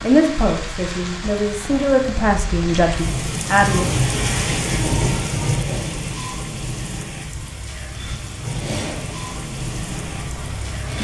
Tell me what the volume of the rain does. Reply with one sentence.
The loudness of the rain goes up, then down.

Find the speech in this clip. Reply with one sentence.
The speech can be heard from 0.0 to 3.9 s.